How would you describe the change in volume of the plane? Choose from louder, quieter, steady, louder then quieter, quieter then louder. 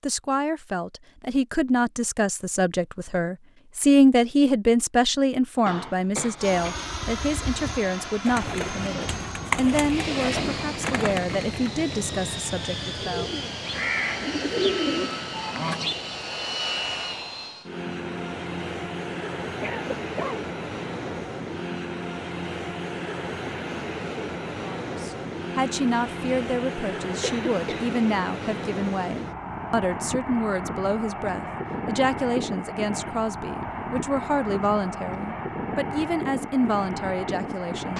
steady.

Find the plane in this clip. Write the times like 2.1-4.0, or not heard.
6.3-37.9.